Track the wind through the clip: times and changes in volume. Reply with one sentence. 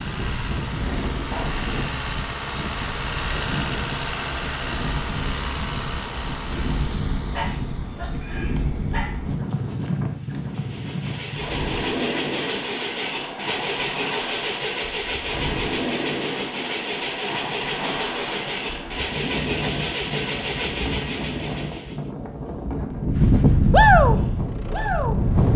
The wind can be heard from 0.0 to 25.5 s, getting louder.